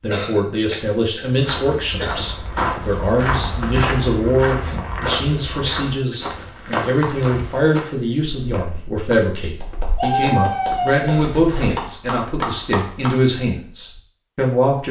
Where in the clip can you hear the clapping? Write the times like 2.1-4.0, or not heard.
9.6-13.2.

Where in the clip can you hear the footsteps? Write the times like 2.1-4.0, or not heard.
1.2-11.9.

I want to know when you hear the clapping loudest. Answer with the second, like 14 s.
10 s.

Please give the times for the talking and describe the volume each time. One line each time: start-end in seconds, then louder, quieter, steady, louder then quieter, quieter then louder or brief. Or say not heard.
0.0-14.8 steady.